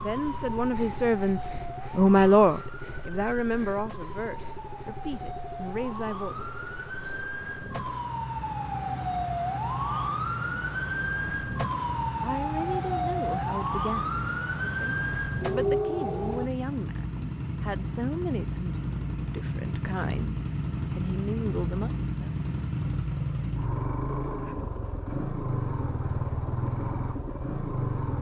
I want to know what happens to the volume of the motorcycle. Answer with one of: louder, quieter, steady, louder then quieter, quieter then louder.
louder.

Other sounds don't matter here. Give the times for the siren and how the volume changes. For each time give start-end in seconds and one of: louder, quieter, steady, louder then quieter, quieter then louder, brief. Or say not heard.
0.0-16.5 louder.